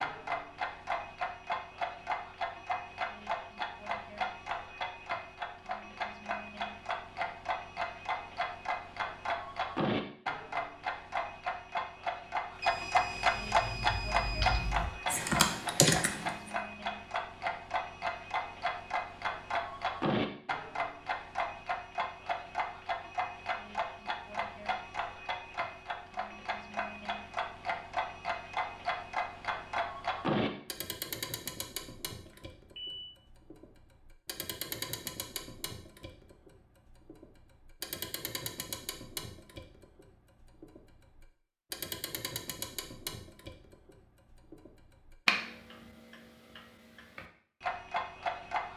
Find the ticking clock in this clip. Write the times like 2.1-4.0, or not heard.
0.0-48.7.